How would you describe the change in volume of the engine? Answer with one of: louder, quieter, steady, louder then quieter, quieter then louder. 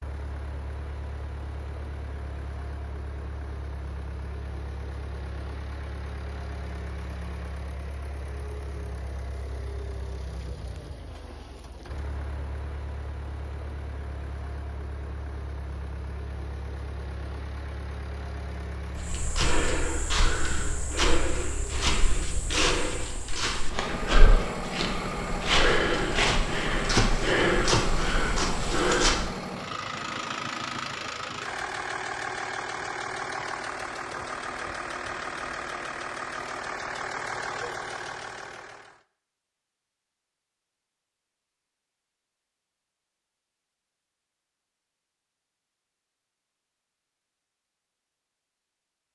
louder.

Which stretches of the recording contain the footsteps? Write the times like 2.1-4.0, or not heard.
18.9-29.3.